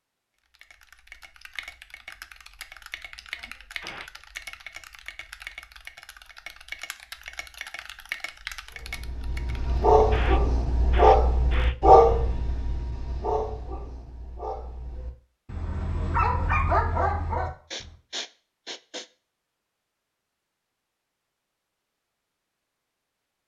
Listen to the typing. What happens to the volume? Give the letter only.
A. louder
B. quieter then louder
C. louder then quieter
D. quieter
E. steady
A.